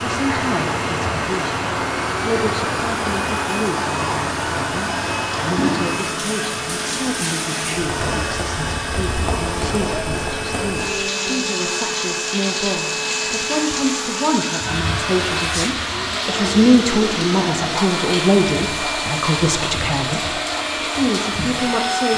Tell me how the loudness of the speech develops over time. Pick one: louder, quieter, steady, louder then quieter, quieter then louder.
louder.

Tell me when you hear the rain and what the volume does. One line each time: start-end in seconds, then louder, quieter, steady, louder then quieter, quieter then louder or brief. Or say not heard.
0.0-22.1 steady.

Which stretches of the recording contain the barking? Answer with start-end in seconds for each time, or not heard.
not heard.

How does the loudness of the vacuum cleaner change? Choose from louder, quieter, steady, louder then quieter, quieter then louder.
steady.